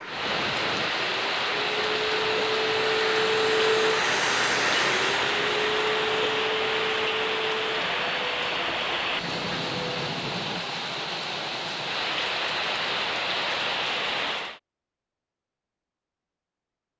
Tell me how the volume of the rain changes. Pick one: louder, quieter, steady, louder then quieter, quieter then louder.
steady.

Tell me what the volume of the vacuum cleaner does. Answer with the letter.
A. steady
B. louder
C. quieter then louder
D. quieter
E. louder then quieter
E.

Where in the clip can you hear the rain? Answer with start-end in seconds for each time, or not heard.
0.0-14.6.